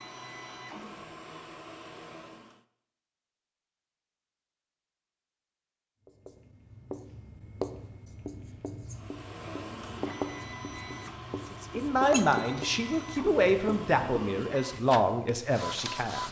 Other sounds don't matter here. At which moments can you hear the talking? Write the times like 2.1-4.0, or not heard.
11.5-16.2.